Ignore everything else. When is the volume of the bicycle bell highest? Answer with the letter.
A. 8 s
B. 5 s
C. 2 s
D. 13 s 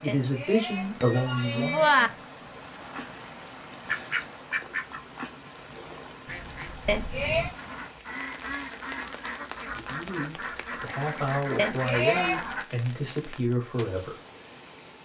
C.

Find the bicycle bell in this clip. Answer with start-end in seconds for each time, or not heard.
0.1-2.1, 6.8-7.5, 11.6-12.4.